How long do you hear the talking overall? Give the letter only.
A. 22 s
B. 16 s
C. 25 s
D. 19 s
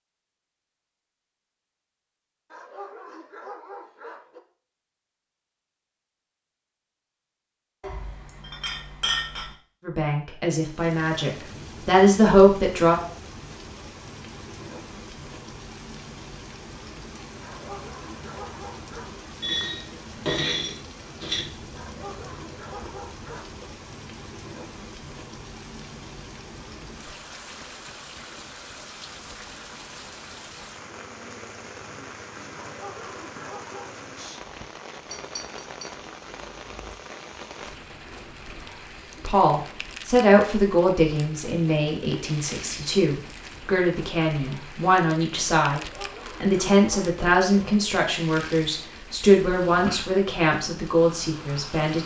B.